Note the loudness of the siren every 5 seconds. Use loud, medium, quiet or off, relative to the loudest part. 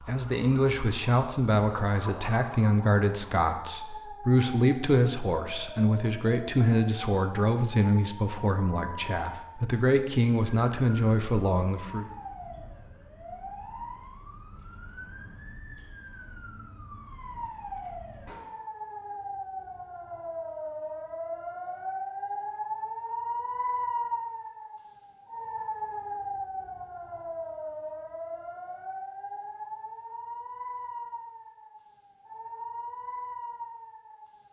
medium, medium, medium, medium, loud, loud, medium.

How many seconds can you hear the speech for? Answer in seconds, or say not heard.
12 s.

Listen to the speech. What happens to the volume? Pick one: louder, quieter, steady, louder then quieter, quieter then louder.
steady.